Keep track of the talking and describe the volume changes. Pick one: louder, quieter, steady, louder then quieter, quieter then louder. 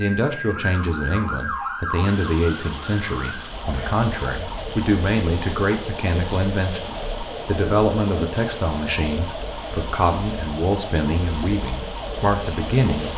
steady.